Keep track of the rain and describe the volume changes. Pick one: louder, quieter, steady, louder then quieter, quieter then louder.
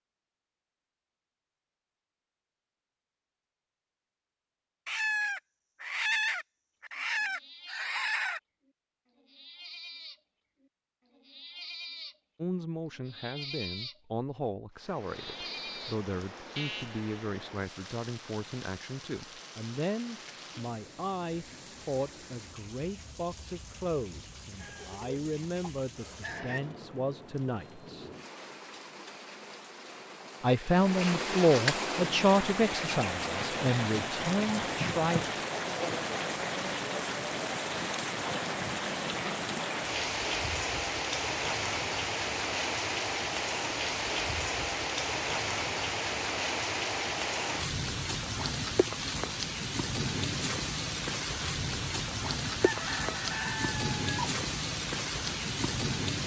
louder.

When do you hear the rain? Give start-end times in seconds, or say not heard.
14.7-56.2.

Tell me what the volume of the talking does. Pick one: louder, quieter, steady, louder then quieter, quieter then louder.
louder.